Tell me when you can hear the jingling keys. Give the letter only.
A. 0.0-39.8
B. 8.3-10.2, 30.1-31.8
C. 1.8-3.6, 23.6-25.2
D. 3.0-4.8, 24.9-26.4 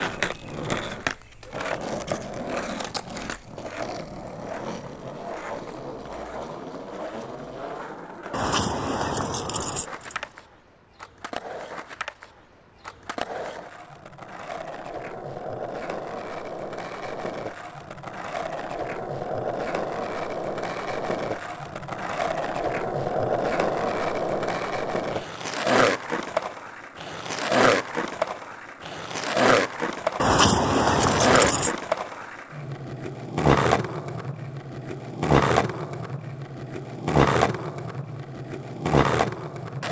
B.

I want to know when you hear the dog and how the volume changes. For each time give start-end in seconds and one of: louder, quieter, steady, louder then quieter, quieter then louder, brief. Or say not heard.
not heard.